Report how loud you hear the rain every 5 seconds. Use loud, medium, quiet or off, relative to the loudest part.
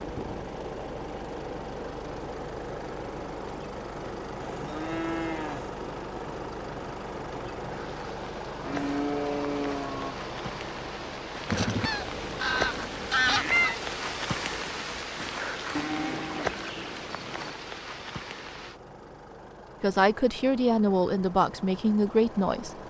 quiet, medium, loud, loud, off.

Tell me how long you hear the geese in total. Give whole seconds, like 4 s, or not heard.
2 s.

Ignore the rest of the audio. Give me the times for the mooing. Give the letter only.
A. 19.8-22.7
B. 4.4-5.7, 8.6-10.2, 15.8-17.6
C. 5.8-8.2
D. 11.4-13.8
B.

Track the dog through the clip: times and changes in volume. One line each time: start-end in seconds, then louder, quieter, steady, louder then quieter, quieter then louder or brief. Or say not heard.
not heard.